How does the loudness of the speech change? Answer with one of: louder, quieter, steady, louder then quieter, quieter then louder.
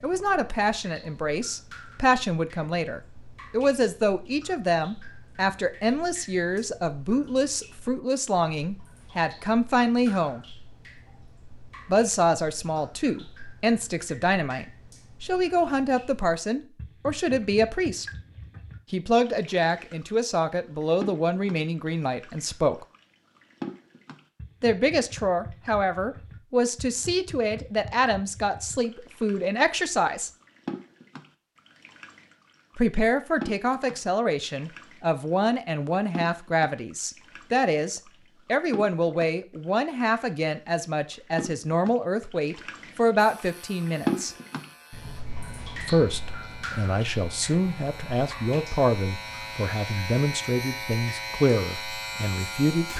steady.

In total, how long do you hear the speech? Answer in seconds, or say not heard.
45 s.